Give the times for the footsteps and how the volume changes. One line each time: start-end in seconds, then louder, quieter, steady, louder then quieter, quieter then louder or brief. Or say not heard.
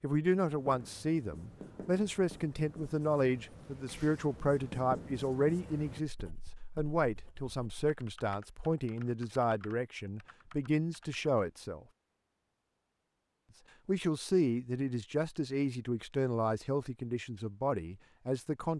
not heard.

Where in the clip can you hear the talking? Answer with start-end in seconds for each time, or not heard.
0.0-11.8, 13.8-18.7.